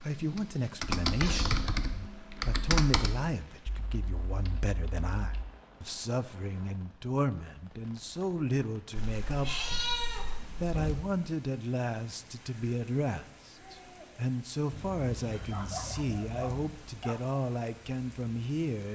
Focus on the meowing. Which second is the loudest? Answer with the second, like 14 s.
10 s.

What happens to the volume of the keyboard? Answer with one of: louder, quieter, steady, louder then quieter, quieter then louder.
quieter.